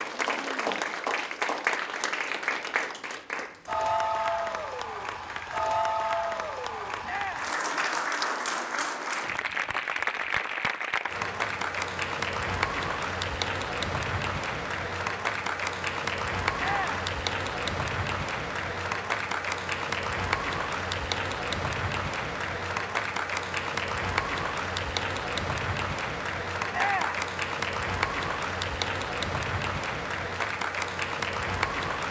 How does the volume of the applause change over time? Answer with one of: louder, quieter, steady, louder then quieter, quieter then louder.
steady.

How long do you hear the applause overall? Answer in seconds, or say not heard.
32 s.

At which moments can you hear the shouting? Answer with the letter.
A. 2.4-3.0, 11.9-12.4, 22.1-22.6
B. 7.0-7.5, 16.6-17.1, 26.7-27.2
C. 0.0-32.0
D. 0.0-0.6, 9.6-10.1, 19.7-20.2
B.